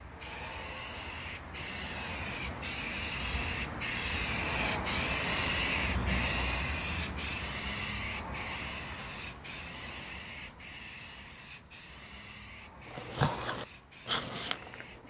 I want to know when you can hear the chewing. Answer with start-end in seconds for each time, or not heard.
12.9-15.0.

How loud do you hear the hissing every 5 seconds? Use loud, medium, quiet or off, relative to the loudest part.
loud, loud, quiet.